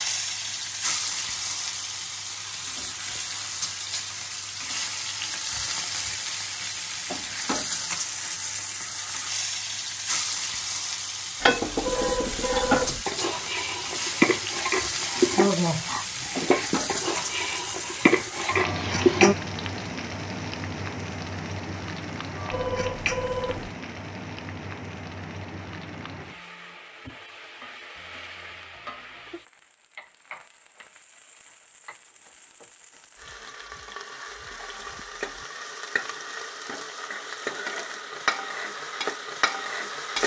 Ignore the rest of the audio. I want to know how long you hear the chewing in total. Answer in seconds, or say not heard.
not heard.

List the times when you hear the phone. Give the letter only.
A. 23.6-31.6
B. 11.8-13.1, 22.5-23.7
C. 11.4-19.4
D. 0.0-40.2
B.